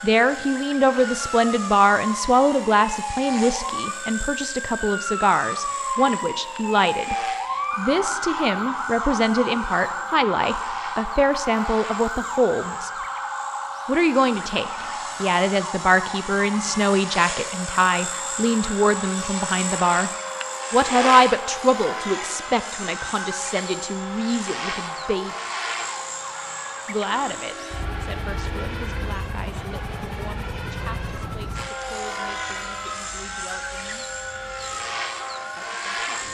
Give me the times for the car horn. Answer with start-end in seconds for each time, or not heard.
27.1-29.1.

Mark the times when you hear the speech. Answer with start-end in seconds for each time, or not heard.
0.0-7.2, 7.8-12.9, 13.8-20.1, 20.7-25.4, 26.9-34.0, 35.5-36.2.